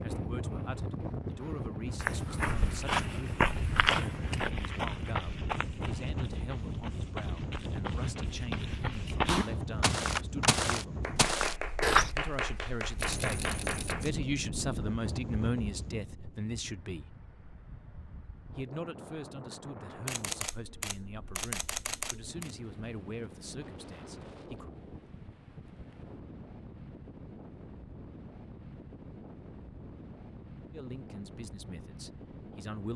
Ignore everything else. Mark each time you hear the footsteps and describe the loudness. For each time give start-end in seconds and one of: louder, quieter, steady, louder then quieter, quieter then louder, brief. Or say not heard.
2.0-12.1 quieter then louder.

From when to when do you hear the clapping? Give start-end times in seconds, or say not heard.
8.7-14.1.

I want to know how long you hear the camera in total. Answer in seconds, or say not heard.
4 s.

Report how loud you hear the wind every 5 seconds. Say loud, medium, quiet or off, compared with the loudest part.
loud, loud, loud, medium, medium, medium, medium.